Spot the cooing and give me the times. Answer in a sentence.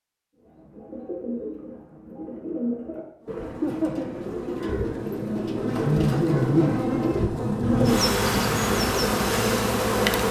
The cooing can be heard from 0.3 to 9.3 s.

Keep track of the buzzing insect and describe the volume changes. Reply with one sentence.
The loudness of the buzzing insect goes up.